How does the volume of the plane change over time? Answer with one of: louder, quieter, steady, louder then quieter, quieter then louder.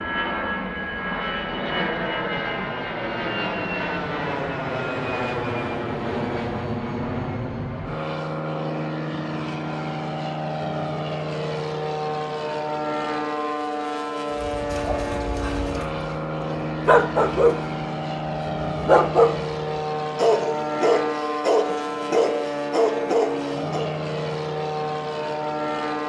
steady.